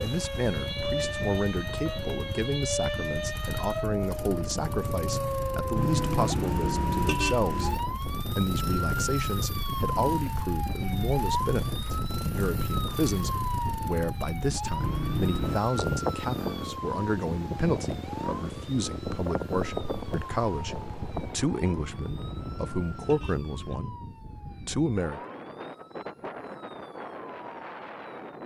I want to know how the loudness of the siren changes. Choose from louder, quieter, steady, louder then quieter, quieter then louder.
quieter.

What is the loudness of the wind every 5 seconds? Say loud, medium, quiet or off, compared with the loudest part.
medium, loud, loud, loud, medium, medium.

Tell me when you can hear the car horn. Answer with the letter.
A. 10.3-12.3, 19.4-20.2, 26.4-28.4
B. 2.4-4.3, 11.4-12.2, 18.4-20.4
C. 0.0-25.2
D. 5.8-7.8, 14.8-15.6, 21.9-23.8
D.